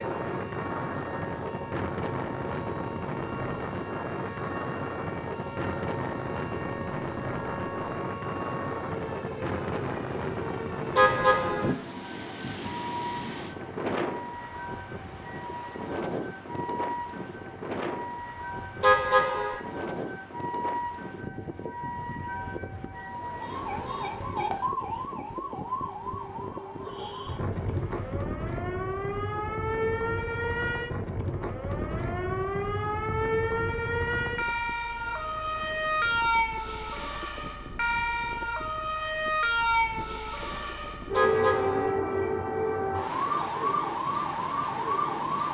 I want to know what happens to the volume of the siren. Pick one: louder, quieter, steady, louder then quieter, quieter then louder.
louder.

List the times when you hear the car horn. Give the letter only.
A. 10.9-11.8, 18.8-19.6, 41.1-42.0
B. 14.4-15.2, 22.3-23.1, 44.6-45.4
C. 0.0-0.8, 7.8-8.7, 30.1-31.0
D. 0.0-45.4
A.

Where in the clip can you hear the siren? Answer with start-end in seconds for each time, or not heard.
0.0-45.4.